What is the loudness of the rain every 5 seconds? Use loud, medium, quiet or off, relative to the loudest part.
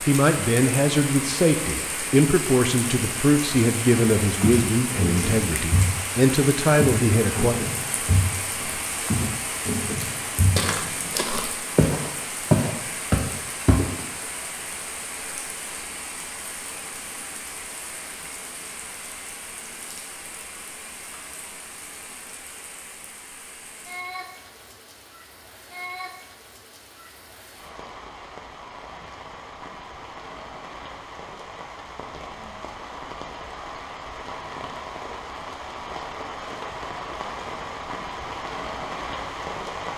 loud, loud, loud, medium, medium, medium, medium, loud.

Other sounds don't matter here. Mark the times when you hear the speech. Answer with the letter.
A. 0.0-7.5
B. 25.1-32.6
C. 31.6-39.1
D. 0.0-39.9
A.